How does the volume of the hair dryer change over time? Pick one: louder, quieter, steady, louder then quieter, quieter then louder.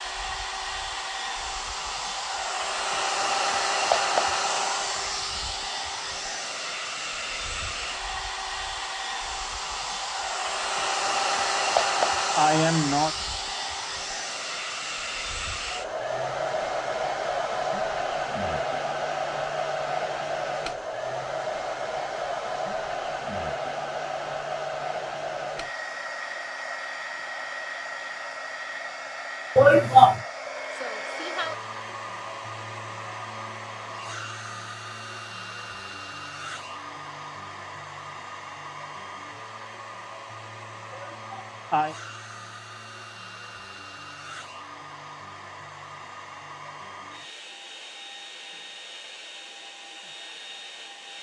quieter.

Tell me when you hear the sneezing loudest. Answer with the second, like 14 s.
30 s.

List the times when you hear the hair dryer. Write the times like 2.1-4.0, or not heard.
0.0-51.1.